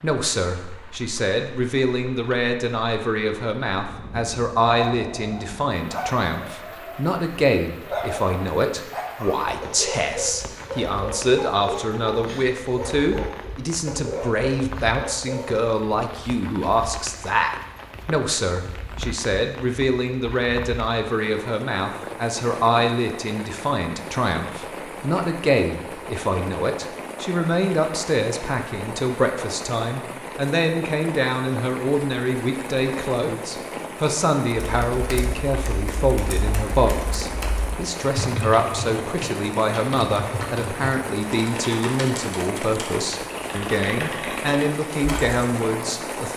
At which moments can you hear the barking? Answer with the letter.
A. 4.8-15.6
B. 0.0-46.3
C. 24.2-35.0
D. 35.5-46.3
A.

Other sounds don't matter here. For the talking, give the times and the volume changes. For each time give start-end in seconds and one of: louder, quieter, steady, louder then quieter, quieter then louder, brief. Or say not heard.
0.0-46.3 steady.